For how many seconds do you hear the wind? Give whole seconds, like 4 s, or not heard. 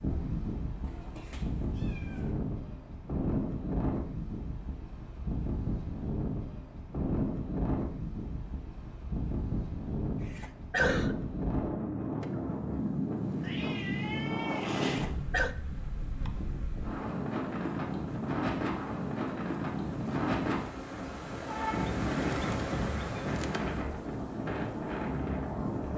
26 s.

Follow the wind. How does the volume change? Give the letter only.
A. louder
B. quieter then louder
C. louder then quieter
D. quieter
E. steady
E.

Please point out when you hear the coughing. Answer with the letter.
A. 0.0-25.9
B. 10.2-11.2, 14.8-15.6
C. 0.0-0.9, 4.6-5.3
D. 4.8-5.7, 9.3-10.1
B.